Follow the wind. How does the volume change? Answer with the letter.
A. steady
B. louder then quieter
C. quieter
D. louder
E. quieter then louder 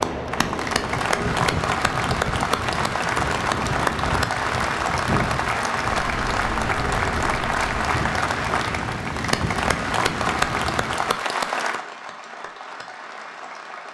A.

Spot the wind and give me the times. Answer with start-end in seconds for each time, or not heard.
0.0-11.2.